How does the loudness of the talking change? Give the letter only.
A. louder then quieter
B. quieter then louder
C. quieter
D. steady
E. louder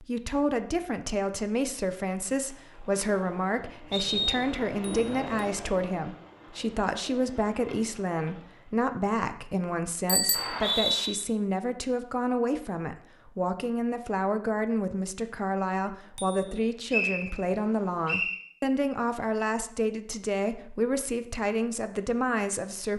D.